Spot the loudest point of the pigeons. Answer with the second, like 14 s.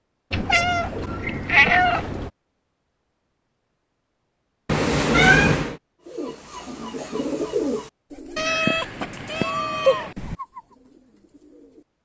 8 s.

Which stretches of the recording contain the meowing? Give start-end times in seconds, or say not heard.
0.3-2.3, 4.7-5.8, 8.3-10.3.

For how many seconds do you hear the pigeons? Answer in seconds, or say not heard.
6 s.